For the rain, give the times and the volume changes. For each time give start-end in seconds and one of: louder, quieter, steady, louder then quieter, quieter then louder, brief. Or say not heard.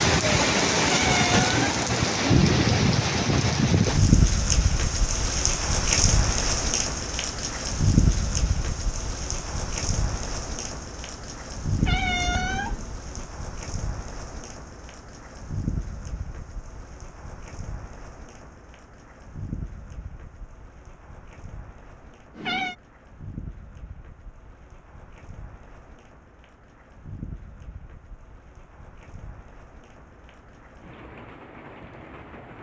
0.0-32.5 quieter.